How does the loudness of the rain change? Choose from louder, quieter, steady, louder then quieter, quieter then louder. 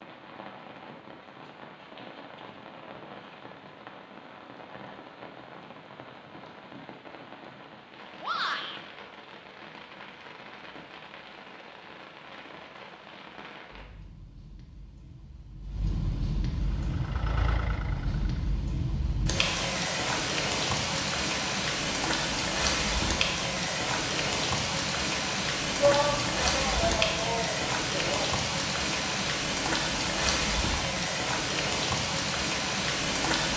louder.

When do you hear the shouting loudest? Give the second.
26 s.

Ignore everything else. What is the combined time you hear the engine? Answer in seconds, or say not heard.
2 s.